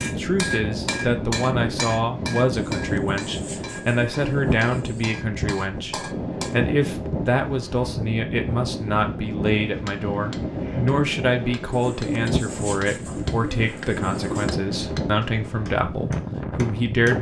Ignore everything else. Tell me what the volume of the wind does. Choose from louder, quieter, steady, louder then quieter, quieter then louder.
steady.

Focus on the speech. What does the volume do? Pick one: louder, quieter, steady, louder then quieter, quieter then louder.
steady.